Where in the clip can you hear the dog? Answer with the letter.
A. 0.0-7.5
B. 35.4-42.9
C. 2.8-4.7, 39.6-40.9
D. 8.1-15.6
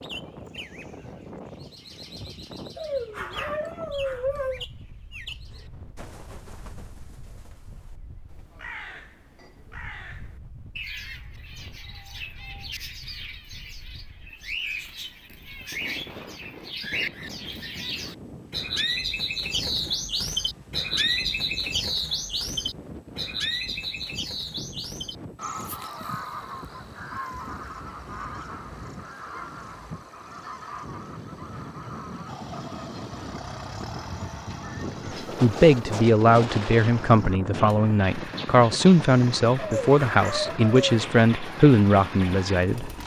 C.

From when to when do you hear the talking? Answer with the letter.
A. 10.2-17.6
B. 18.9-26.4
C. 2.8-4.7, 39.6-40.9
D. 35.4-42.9
D.